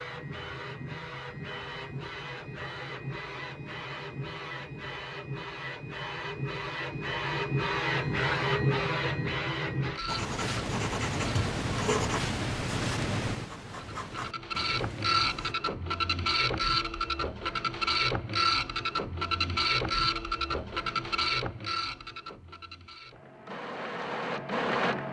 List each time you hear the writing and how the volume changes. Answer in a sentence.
You can hear the writing from 10.1 to 15.6 s, getting quieter.